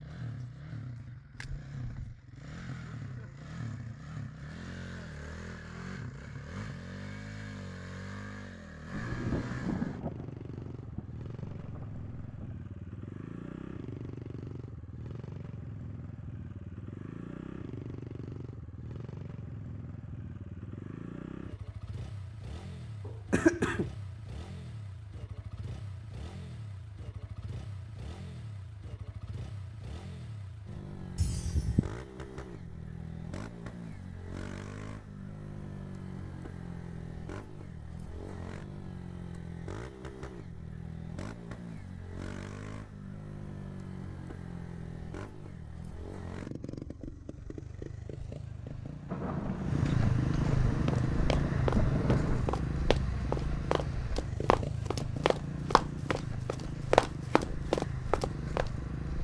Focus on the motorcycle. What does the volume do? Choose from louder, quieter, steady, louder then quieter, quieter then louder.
louder.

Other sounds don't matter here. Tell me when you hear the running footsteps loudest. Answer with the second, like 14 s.
57 s.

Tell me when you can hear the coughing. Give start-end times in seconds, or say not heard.
23.1-23.9, 31.1-31.9.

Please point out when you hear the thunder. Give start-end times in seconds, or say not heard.
8.9-12.6, 49.0-52.5.